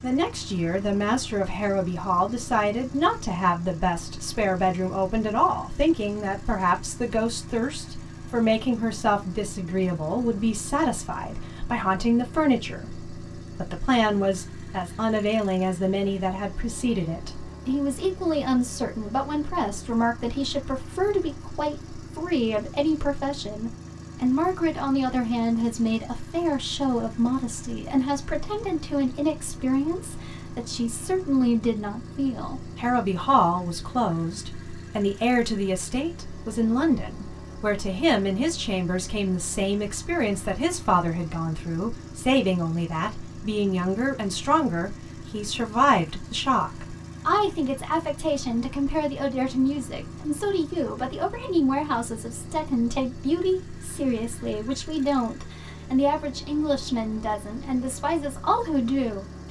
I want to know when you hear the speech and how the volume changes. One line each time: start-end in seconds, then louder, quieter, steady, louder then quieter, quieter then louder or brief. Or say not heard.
0.0-59.2 steady.